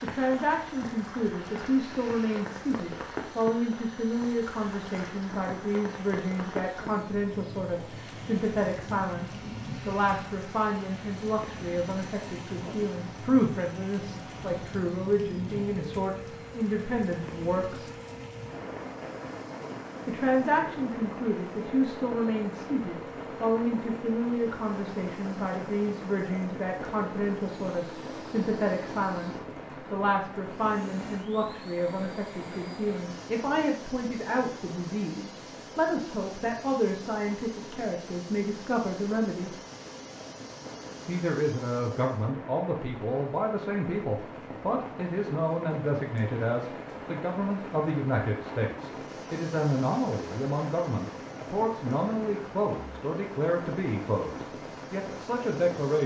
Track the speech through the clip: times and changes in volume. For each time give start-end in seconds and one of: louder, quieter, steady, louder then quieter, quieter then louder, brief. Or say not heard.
0.0-17.9 steady
20.1-39.5 steady
41.0-56.0 steady.